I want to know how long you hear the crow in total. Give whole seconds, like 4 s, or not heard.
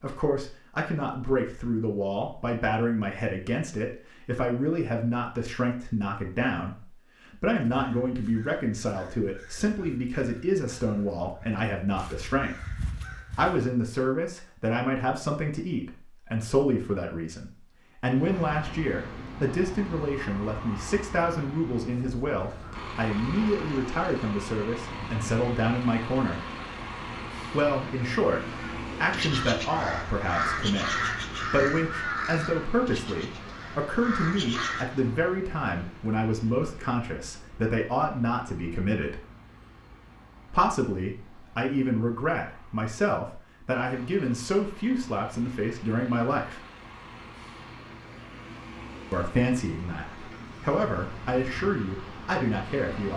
12 s.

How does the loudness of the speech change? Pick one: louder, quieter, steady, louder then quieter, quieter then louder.
steady.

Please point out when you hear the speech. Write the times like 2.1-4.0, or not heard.
0.0-12.6, 13.3-26.4, 27.5-39.2, 40.5-46.6, 49.1-53.1.